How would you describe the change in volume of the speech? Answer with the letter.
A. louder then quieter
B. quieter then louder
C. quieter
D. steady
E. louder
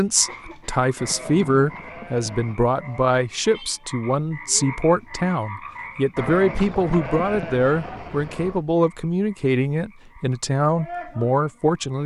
D.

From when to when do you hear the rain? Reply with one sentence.
You can't hear the rain here.